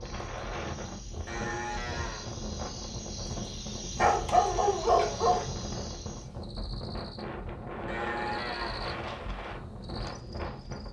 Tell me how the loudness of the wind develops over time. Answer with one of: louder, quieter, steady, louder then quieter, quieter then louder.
steady.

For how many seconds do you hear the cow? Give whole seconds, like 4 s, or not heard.
2 s.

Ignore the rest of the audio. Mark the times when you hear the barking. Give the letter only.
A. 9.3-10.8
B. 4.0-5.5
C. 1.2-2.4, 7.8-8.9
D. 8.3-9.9
B.